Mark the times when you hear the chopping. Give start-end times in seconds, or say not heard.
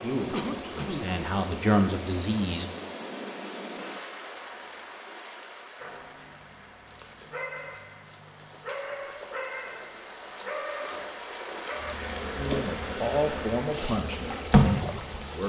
not heard.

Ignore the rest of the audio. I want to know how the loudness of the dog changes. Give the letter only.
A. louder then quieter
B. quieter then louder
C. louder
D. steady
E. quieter
C.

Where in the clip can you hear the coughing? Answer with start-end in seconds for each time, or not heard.
0.3-1.2.